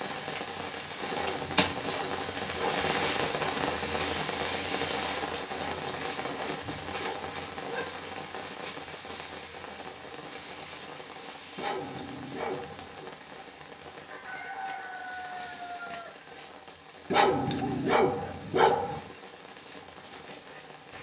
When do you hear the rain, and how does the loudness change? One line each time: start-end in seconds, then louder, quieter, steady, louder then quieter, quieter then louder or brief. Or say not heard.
0.0-20.9 quieter.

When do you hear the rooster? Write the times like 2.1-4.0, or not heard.
14.1-16.1.